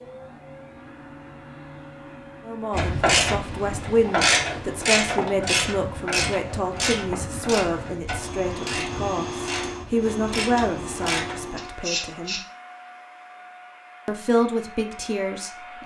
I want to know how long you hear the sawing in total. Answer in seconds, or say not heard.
not heard.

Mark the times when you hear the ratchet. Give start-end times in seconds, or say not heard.
2.7-12.4.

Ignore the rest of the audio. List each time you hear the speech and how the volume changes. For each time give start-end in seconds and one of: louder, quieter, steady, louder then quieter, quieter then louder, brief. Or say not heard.
2.5-12.4 steady
14.1-15.8 brief.